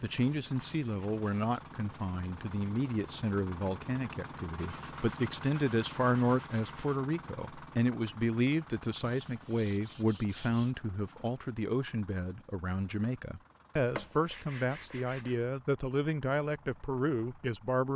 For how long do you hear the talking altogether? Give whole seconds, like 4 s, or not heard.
18 s.